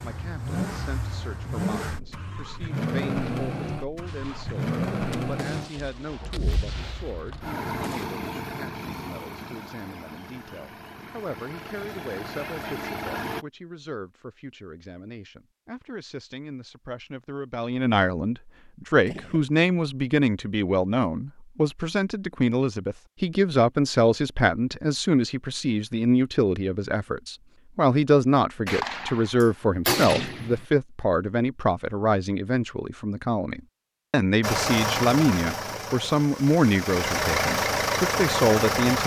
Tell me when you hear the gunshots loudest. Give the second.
30 s.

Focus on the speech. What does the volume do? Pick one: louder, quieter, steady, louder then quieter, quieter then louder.
louder.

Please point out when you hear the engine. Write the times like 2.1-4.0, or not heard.
0.0-13.4, 34.4-39.0.